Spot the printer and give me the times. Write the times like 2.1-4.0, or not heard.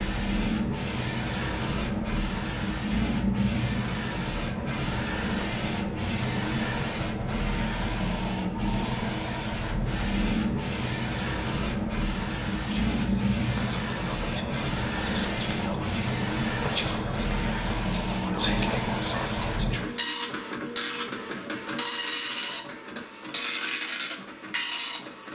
0.0-25.3.